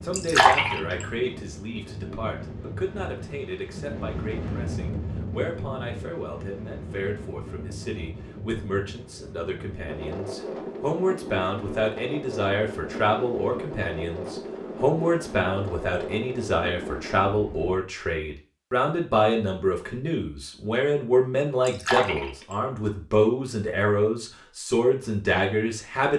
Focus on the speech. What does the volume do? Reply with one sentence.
The volume of the speech goes up.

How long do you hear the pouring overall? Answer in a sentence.
You can hear the pouring for 2 seconds altogether.